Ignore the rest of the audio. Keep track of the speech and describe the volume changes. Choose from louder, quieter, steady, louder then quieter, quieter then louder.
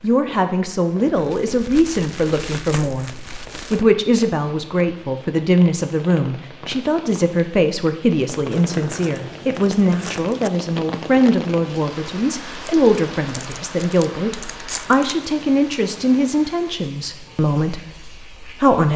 steady.